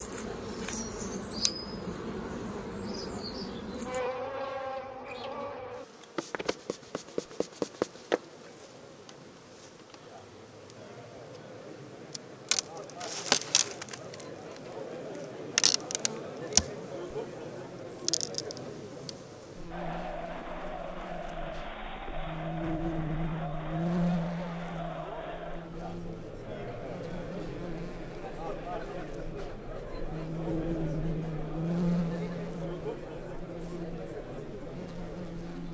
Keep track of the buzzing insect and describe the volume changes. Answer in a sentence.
The loudness of the buzzing insect stays about the same.